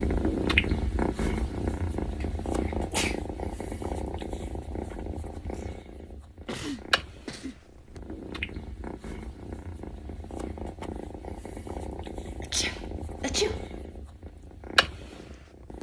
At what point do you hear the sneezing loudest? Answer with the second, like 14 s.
13 s.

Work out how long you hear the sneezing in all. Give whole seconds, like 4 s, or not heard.
4 s.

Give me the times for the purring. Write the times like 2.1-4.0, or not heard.
0.0-15.7.